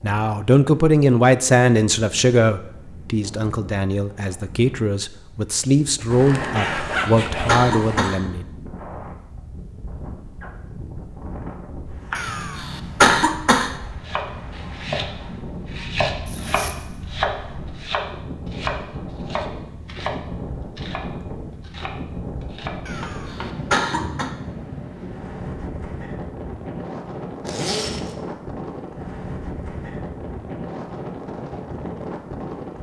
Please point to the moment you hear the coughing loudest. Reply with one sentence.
The volume of the coughing peaks at 13 seconds.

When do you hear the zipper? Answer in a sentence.
The zipper can be heard from 6.1 to 8.1 s, from 16.2 to 16.9 s and from 27.4 to 28.1 s.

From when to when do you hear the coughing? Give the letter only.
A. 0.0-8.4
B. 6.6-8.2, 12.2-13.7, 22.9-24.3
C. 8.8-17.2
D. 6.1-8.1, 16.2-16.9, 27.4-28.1
B.